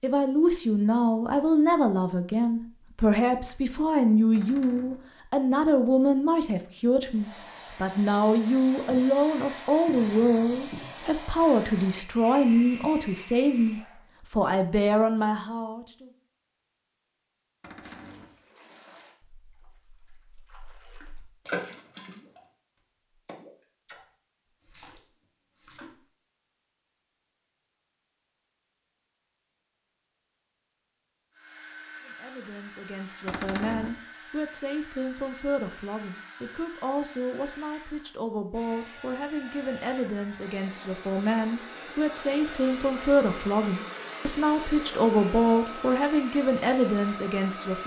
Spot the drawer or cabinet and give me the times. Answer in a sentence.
You can hear the drawer or cabinet from 4.3 to 5.1 s, from 17.6 to 18.4 s and from 33.2 to 34.0 s.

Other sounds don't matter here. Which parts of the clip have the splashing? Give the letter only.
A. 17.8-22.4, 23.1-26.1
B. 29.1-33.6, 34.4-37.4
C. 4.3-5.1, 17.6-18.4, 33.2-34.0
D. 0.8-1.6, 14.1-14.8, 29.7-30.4
A.